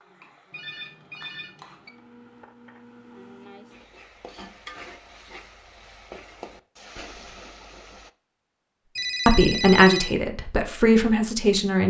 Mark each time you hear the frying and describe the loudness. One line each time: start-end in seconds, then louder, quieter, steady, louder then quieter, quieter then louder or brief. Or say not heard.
0.0-8.1 louder.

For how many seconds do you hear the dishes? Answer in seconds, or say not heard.
not heard.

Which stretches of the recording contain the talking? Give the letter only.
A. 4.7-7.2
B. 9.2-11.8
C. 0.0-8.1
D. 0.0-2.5
B.